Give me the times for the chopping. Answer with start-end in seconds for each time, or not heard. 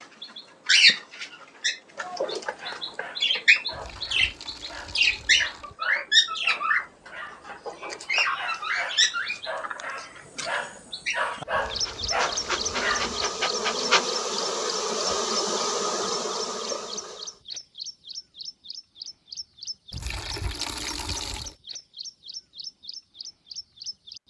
not heard.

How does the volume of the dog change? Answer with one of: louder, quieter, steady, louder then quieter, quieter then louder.
louder.